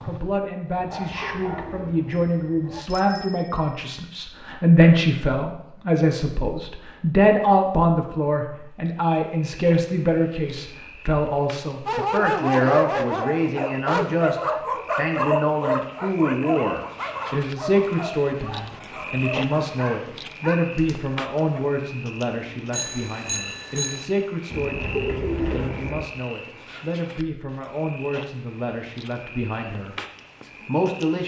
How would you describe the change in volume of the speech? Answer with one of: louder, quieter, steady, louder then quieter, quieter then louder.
quieter.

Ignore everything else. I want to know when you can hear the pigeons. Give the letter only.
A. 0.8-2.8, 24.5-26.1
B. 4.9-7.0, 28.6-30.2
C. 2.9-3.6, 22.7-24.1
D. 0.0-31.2
A.